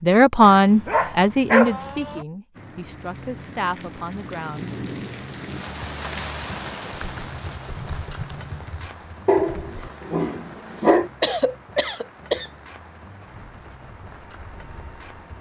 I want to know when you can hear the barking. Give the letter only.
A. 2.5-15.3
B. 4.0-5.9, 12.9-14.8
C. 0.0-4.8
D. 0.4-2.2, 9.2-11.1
D.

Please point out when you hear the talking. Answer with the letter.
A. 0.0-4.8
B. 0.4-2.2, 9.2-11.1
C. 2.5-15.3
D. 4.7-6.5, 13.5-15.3
A.